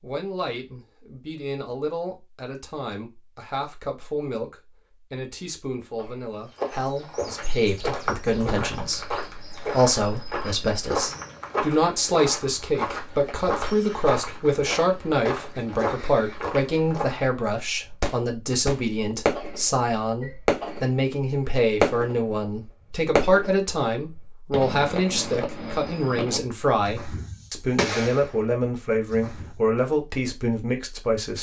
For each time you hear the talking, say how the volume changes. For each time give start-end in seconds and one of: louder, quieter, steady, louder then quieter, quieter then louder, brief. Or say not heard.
0.0-31.3 louder.